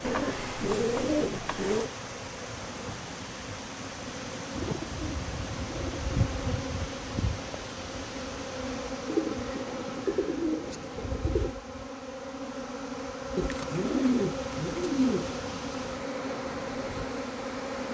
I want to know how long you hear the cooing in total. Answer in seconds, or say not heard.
9 s.